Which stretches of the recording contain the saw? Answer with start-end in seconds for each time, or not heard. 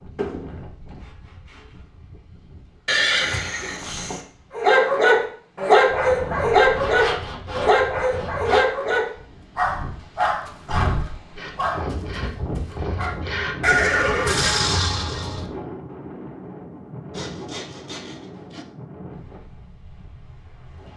0.1-1.6, 6.8-8.7, 11.3-13.8, 17.1-18.6.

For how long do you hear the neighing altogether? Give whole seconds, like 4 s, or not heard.
3 s.